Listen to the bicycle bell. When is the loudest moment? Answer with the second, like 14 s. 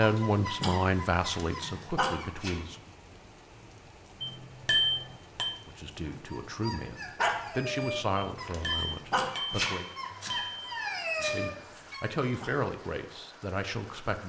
5 s.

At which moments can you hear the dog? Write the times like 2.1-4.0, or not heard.
0.0-2.6, 6.0-12.6.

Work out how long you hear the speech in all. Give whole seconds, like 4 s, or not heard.
10 s.